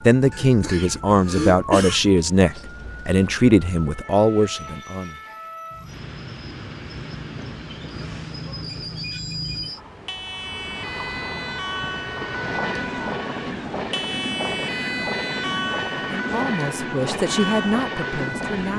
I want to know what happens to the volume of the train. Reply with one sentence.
The loudness of the train goes up.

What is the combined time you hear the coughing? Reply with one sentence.
You can hear the coughing for 2 seconds altogether.